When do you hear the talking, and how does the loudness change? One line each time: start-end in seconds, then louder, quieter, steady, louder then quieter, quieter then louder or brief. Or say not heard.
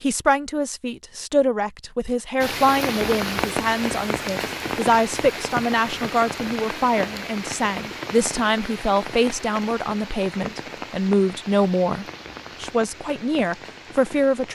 0.0-14.4 steady.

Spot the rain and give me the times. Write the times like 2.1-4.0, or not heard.
2.4-14.4.